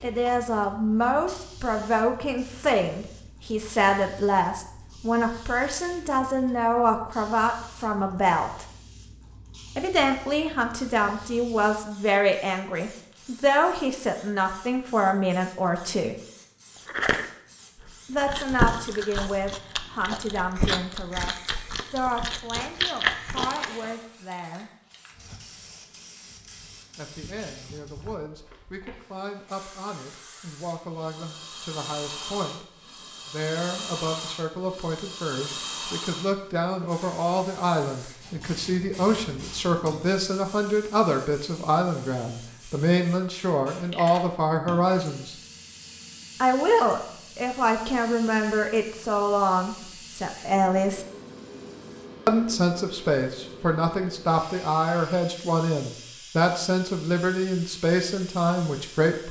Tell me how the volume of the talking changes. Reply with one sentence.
The loudness of the talking goes down, then up.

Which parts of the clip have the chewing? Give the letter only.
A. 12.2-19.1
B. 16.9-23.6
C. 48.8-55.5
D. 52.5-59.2
B.